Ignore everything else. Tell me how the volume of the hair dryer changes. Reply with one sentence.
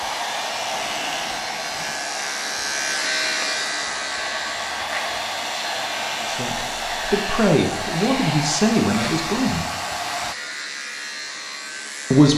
The loudness of the hair dryer goes down, then up.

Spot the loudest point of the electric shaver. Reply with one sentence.
The volume of the electric shaver peaks at 3 seconds.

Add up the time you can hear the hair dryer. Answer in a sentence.
The hair dryer can be heard for 10 seconds in total.